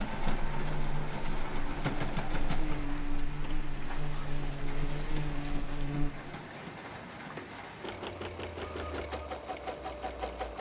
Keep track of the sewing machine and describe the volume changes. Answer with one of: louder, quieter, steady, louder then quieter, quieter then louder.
quieter then louder.